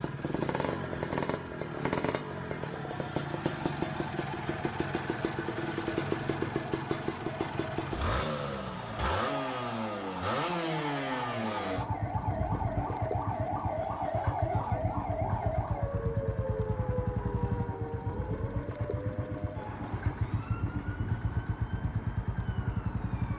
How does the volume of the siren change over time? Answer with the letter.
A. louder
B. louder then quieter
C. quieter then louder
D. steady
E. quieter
B.